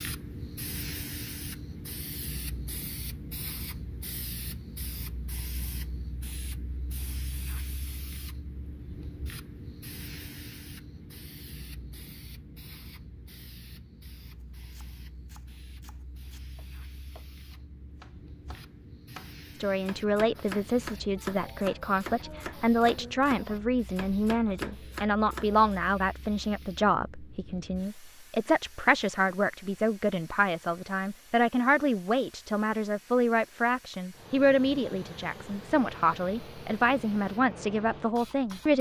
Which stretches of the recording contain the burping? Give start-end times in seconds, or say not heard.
not heard.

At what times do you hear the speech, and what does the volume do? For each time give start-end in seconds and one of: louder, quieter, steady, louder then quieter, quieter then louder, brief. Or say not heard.
19.6-38.7 steady.